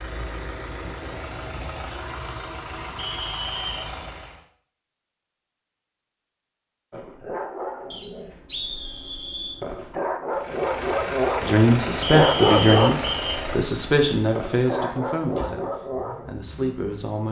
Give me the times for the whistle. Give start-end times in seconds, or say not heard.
3.0-3.9, 7.9-9.6, 12.0-13.4.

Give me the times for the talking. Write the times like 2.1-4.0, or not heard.
11.4-17.2.